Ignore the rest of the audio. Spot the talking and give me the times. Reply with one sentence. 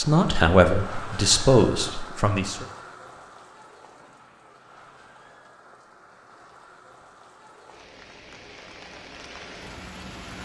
The talking can be heard from 0.0 to 2.6 s.